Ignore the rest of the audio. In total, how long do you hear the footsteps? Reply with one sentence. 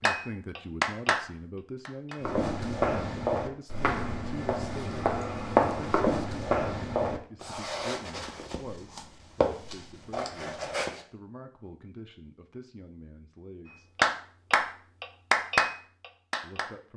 You can hear the footsteps for 9 seconds altogether.